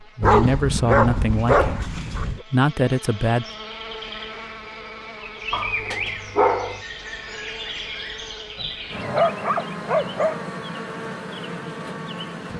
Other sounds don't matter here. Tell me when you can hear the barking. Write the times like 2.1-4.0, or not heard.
0.2-2.5, 5.5-6.8, 8.6-10.4.